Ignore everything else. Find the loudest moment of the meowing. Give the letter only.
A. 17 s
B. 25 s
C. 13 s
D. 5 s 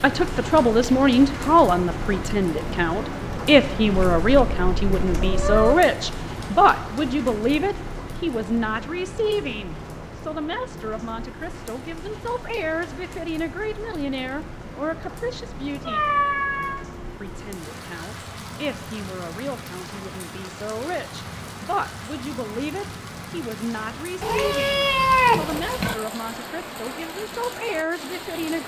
B.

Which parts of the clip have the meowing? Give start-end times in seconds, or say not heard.
4.0-5.8, 15.8-16.9, 24.2-25.9.